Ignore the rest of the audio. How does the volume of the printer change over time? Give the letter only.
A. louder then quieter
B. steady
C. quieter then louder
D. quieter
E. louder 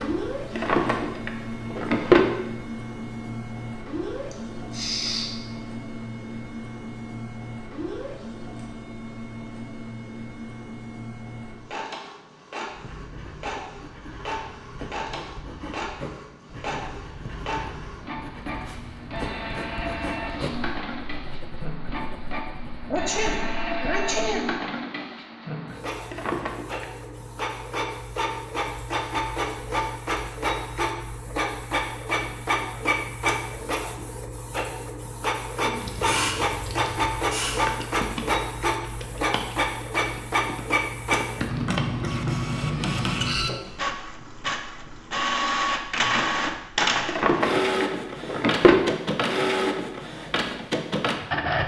E.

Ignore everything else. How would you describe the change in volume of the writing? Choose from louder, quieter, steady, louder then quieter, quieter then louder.
louder then quieter.